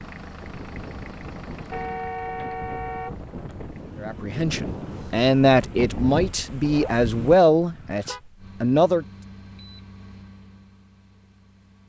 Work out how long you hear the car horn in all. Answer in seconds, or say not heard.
3 s.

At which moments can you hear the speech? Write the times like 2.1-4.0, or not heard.
4.0-9.1.